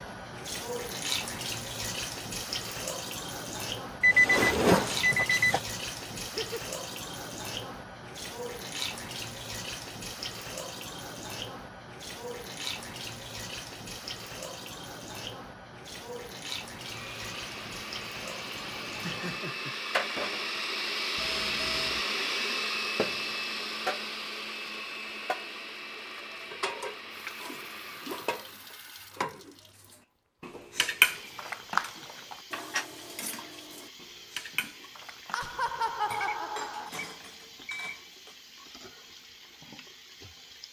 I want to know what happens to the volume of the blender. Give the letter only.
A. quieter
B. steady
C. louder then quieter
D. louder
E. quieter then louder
C.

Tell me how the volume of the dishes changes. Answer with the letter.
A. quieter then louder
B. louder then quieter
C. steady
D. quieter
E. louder
B.